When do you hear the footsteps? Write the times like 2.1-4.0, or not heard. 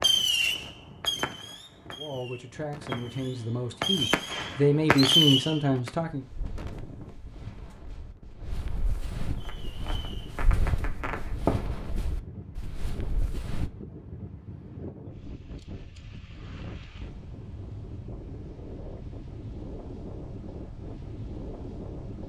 6.0-13.7.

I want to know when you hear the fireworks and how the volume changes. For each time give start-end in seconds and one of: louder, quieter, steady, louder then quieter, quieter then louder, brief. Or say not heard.
0.0-5.9 quieter then louder
9.3-11.8 brief.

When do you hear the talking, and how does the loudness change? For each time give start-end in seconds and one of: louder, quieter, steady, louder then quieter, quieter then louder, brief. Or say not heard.
1.9-6.2 louder.